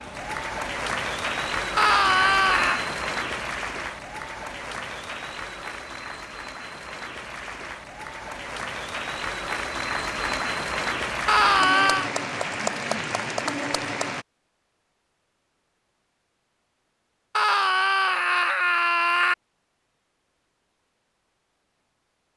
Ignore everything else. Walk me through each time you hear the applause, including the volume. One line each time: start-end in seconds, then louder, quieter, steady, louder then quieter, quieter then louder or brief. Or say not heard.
0.0-14.2 quieter then louder.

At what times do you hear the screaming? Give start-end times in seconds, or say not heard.
1.8-2.8, 11.2-12.1, 17.4-19.4.